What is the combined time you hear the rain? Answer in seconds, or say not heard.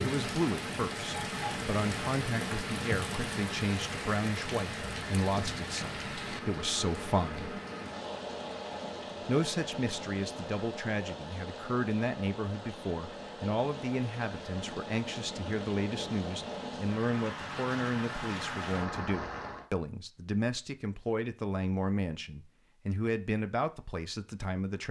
20 s.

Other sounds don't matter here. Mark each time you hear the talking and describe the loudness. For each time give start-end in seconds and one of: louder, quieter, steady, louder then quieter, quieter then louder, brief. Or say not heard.
0.0-7.6 steady
9.2-24.8 steady.